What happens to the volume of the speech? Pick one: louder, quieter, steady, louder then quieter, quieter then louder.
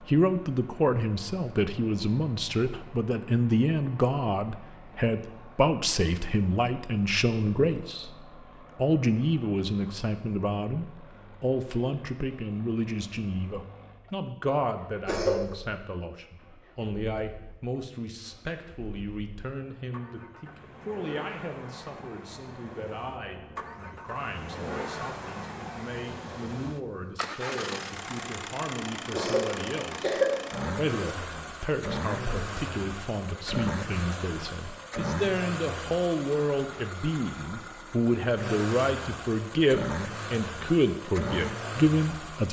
quieter then louder.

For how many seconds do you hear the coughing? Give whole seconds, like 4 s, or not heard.
2 s.